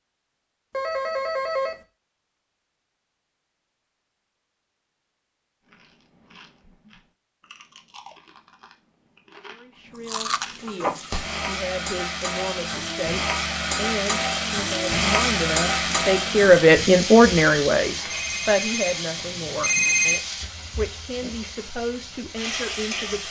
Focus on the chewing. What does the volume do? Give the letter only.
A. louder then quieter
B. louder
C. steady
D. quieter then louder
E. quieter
B.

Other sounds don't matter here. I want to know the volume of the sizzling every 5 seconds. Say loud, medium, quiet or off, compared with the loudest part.
off, off, loud, loud, medium.